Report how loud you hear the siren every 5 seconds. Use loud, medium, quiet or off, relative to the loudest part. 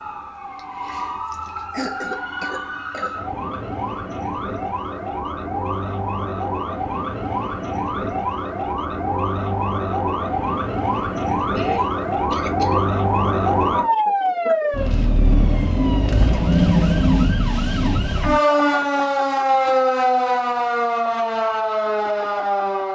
medium, medium, loud, loud, loud.